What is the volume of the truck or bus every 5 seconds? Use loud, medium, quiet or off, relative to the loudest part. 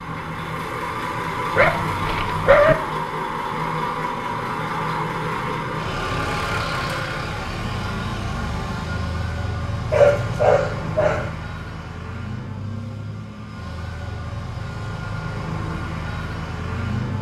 loud, loud, medium, loud.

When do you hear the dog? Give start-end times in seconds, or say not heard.
1.6-2.8, 9.9-11.3.